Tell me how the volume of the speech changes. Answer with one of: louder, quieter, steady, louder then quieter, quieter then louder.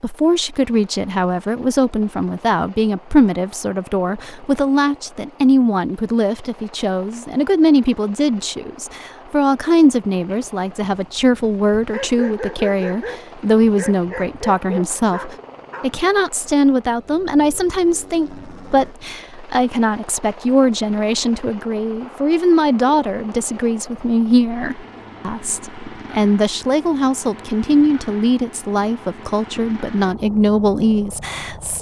steady.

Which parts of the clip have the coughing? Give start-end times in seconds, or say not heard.
not heard.